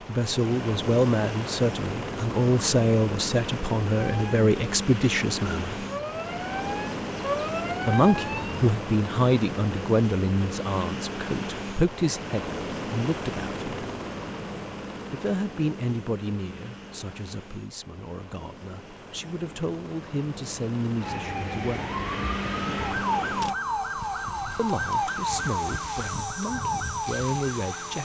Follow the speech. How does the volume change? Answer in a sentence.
The volume of the speech goes down.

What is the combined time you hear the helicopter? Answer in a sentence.
The helicopter can be heard for 28 seconds in total.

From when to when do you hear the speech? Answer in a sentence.
You can hear the speech from 0.1 to 5.8 s, from 7.8 to 13.8 s, from 15.1 to 21.9 s and from 24.6 to 27.9 s.